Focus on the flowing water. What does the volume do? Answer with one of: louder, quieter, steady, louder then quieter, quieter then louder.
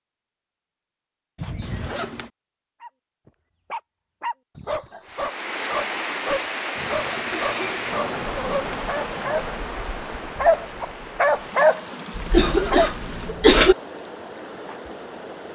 quieter.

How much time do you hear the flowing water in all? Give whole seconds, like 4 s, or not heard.
10 s.